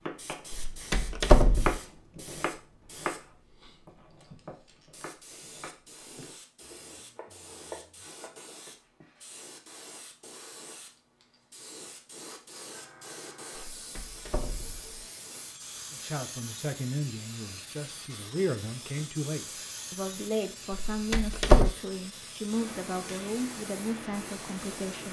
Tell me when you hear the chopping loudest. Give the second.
2 s.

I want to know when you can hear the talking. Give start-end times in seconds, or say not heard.
15.9-25.0.